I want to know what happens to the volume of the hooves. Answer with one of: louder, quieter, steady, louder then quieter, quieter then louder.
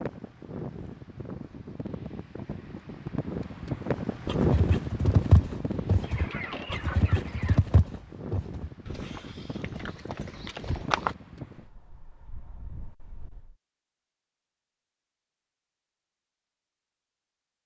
quieter.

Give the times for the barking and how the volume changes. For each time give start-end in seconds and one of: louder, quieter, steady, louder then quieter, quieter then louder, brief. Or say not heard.
not heard.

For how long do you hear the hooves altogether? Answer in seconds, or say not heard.
7 s.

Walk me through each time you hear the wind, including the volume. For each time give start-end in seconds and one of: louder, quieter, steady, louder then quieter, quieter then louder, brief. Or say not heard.
0.0-13.6 louder then quieter.